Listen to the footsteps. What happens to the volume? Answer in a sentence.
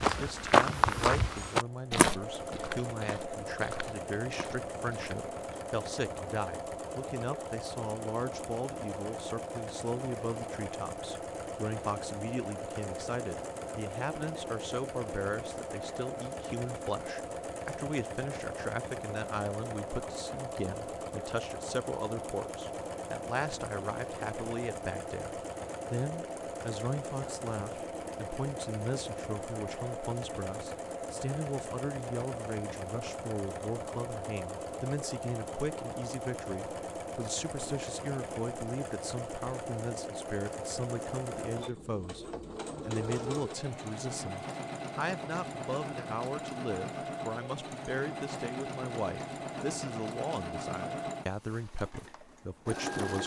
The volume of the footsteps goes down.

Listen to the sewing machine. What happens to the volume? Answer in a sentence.
The volume of the sewing machine stays about the same.